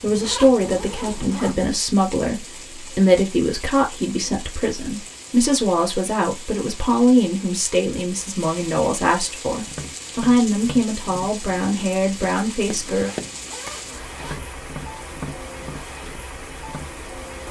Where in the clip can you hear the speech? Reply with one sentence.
The speech can be heard from 0.0 to 13.1 s.